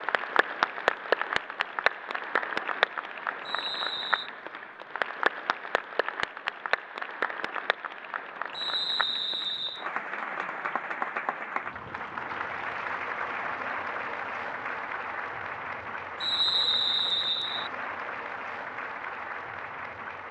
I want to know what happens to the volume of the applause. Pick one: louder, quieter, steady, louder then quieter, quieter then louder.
quieter.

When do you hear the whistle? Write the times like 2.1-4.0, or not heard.
3.5-4.3, 8.5-9.8, 16.2-17.7.